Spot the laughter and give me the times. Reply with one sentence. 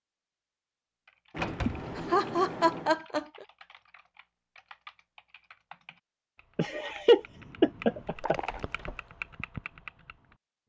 You can hear the laughter from 1.6 to 3.5 s and from 6.5 to 8.3 s.